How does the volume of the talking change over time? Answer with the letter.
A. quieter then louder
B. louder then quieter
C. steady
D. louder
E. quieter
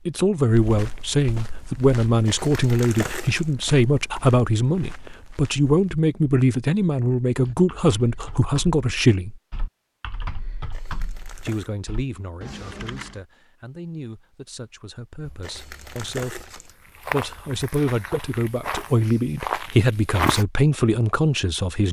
A.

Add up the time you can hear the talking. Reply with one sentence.
You can hear the talking for 20 seconds altogether.